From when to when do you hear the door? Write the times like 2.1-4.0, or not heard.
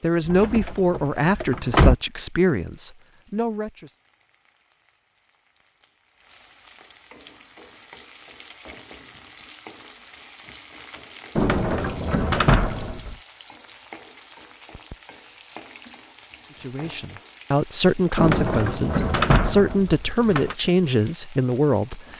0.2-1.9, 11.3-13.2, 18.1-20.6.